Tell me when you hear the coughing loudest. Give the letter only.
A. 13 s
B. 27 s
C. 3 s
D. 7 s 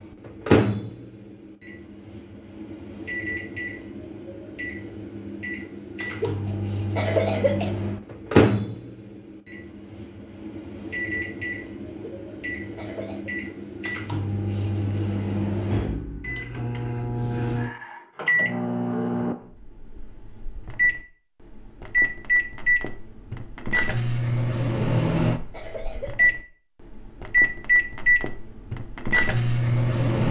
D.